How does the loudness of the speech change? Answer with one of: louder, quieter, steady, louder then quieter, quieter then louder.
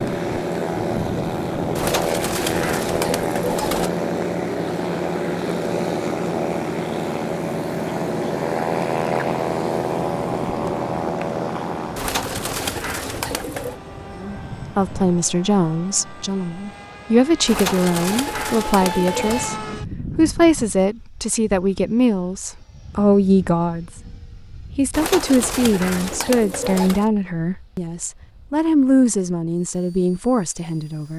steady.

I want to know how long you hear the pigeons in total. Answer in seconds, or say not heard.
8 s.